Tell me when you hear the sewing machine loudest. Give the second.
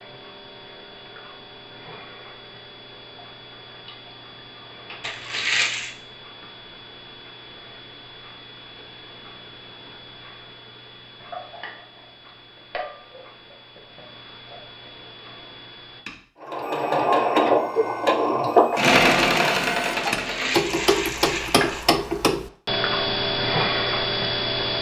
19 s.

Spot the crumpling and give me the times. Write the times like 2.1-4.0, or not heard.
5.0-5.9, 20.1-21.9.